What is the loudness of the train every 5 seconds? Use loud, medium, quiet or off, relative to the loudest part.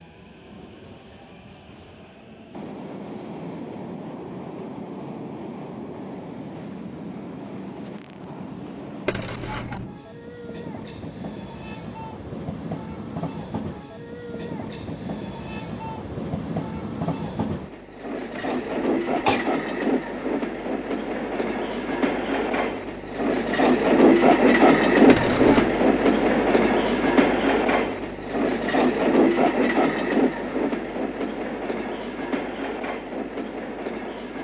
quiet, quiet, quiet, medium, loud, loud, medium.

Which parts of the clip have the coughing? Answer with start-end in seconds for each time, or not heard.
9.1-9.8, 18.4-19.5, 25.1-25.6.